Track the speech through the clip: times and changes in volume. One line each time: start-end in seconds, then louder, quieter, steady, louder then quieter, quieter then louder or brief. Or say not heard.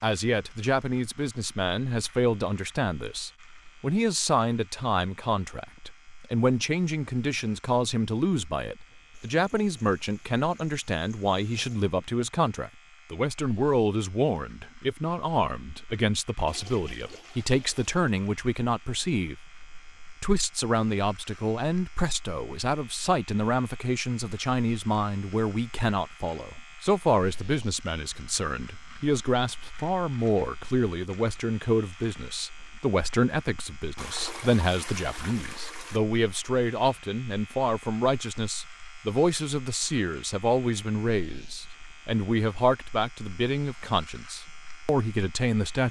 0.0-45.8 steady.